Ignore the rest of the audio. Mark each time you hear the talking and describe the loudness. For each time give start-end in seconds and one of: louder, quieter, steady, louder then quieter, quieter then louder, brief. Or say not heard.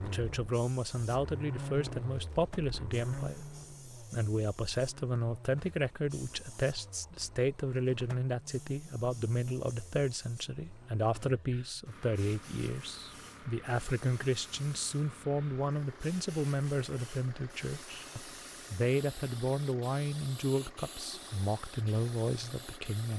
0.0-23.1 steady.